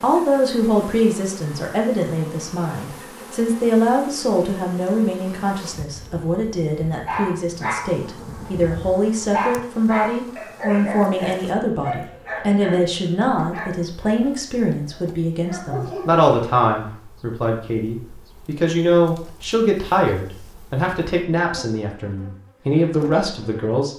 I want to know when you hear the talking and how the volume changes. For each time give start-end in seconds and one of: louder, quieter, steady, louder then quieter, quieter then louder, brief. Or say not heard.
0.0-23.9 steady.